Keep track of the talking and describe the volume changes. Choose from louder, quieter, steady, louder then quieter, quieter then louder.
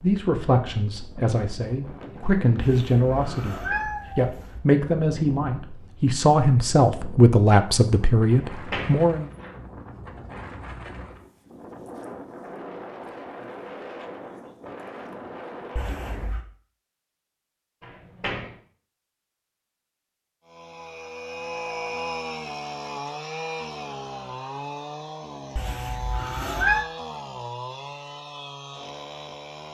louder.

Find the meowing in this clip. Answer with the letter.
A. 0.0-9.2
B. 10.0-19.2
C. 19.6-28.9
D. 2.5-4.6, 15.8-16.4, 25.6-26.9
D.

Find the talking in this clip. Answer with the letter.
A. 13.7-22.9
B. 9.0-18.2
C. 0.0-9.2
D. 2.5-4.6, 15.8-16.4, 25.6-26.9
C.